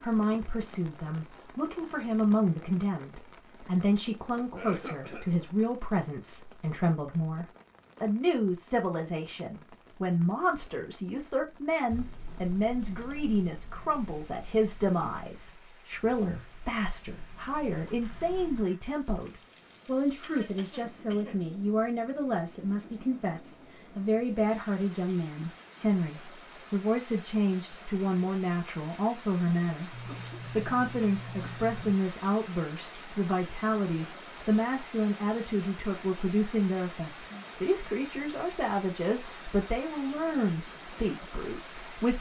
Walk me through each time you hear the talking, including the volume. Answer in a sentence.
The talking can be heard from 0.0 to 42.1 s, at a steady volume.